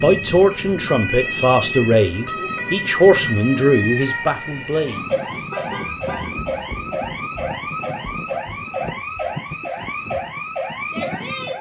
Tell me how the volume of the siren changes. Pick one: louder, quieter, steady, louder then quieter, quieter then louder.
steady.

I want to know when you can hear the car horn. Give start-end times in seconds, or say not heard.
5.3-6.4.